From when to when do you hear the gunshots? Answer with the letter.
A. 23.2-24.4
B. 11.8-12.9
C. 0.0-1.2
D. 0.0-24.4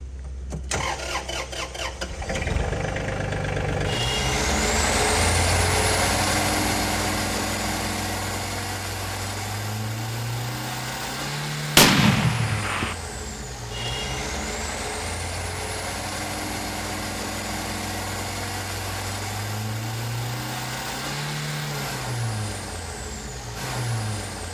B.